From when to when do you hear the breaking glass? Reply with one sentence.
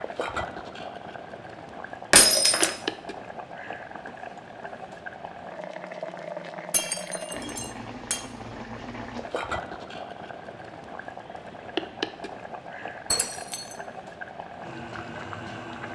The breaking glass can be heard from 2.1 to 2.8 s, from 6.7 to 8.2 s and from 13.1 to 13.8 s.